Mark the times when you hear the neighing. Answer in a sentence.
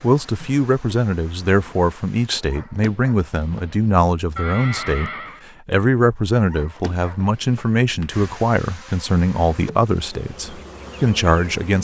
You can hear the neighing from 3.5 to 5.5 s.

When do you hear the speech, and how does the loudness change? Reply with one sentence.
The speech can be heard from 0.0 to 11.7 s, at a steady volume.